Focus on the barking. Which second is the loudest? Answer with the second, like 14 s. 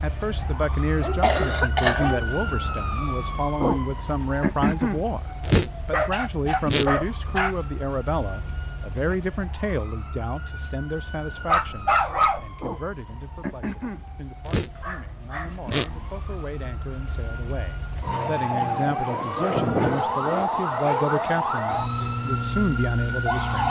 12 s.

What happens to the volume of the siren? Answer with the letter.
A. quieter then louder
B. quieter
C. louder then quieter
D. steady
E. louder
A.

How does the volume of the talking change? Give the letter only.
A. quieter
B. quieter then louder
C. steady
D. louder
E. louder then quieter
B.